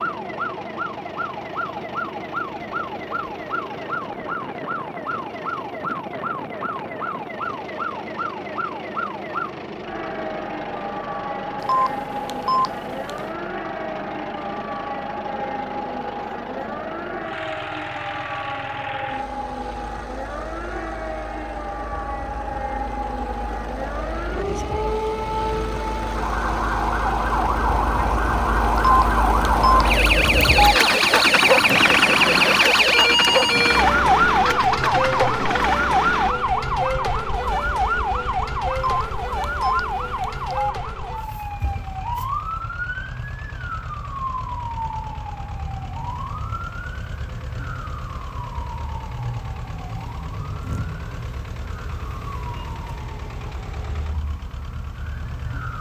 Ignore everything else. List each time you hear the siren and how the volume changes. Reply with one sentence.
You can hear the siren from 0.0 to 55.7 s, getting louder then quieter.